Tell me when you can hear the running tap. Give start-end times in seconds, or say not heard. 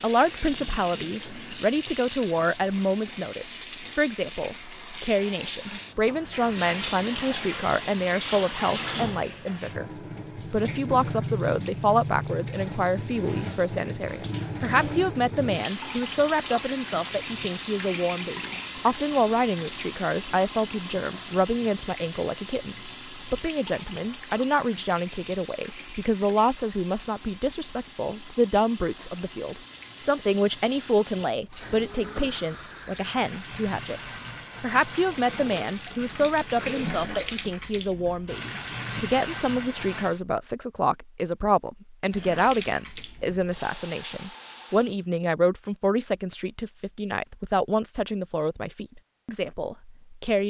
0.0-40.2, 42.0-45.0.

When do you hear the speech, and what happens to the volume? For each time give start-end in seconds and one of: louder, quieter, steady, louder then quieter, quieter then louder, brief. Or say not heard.
0.0-9.9 steady
10.5-50.4 steady.